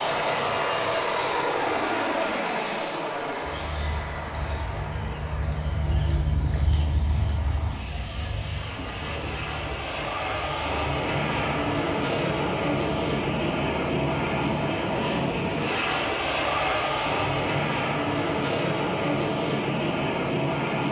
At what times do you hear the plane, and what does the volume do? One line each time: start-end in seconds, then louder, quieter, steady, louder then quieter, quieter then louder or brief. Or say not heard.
0.0-20.8 quieter then louder.